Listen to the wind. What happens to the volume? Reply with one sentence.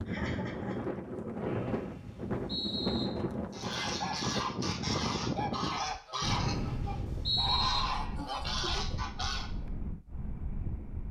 The volume of the wind goes down.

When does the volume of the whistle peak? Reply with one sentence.
The volume of the whistle peaks at 7 seconds.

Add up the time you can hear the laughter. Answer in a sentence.
You can hear the laughter for 2 seconds altogether.